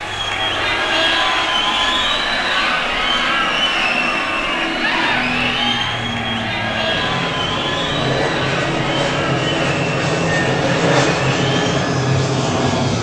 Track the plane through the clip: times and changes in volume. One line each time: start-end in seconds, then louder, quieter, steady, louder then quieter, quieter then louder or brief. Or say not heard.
0.0-12.9 louder.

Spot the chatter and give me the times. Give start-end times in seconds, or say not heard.
0.0-12.9.